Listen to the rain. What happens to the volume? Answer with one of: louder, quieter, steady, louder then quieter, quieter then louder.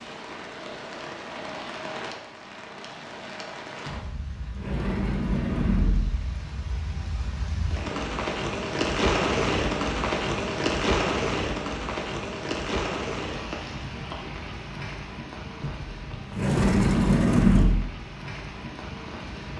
louder then quieter.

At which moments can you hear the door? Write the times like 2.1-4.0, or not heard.
3.9-6.3, 15.6-17.9.